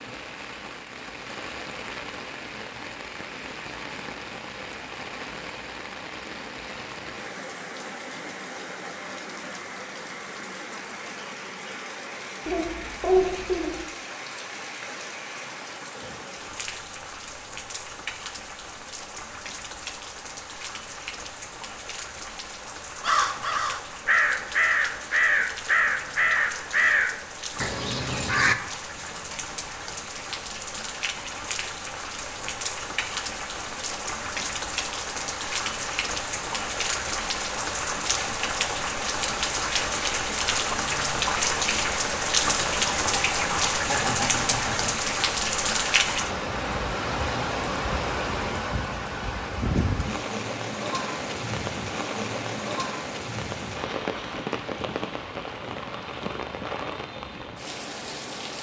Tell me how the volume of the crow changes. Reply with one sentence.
The volume of the crow goes down.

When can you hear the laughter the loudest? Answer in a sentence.
The loudest moment of the laughter is at 13 seconds.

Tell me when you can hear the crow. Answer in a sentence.
You can hear the crow from 23.0 to 28.6 s.